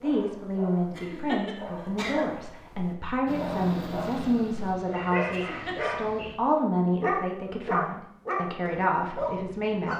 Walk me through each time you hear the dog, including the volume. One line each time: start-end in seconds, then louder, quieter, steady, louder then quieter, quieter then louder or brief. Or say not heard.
0.0-9.9 louder.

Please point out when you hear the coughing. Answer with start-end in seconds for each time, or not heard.
0.9-2.2, 5.3-6.0.